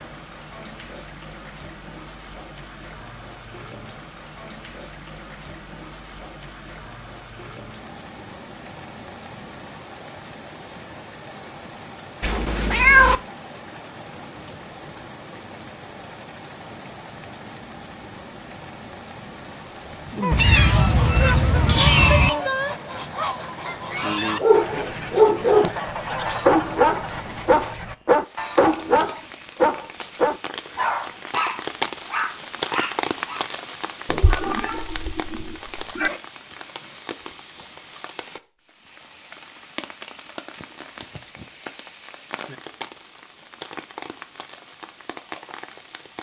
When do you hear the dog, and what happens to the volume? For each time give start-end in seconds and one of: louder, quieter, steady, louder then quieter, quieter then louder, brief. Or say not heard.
24.4-33.5 quieter.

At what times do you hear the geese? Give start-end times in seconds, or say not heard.
19.4-27.9.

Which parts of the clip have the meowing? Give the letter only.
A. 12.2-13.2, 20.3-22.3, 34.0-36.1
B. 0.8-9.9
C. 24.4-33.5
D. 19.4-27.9
A.